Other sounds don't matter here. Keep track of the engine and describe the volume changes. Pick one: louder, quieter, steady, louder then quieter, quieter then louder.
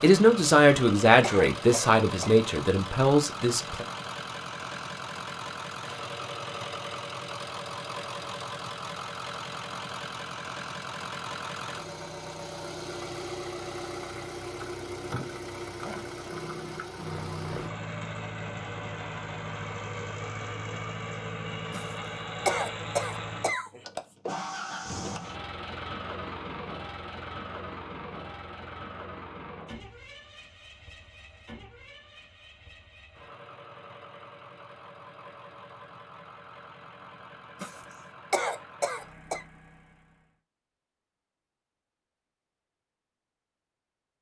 quieter.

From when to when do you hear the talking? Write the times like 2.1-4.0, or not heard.
0.0-3.9.